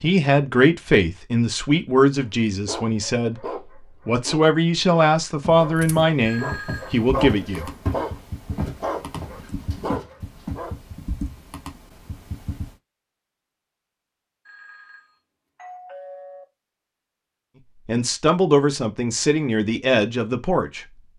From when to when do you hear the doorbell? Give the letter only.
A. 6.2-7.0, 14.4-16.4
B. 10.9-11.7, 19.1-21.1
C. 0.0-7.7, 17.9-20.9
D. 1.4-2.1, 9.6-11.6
A.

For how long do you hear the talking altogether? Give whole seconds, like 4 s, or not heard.
11 s.